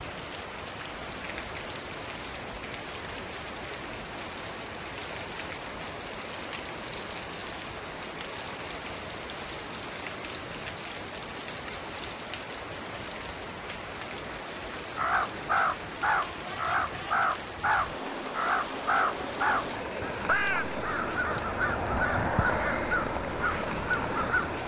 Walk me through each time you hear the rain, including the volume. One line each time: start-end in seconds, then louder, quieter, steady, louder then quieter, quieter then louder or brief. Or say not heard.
0.0-24.6 steady.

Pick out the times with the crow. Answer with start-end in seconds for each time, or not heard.
14.9-24.6.